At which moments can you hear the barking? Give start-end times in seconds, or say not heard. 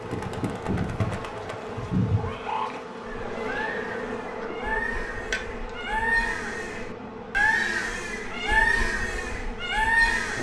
not heard.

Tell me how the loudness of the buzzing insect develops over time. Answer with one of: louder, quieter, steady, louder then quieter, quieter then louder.
quieter.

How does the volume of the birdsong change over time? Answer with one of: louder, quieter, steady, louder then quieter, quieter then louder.
louder.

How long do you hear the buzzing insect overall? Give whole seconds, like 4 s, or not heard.
10 s.